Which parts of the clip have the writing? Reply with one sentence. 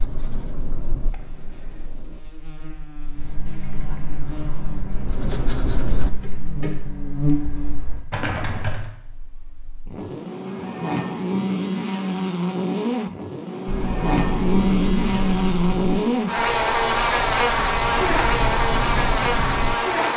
The writing can be heard from 0.0 to 2.2 s, from 3.8 to 6.1 s and from 13.7 to 19.8 s.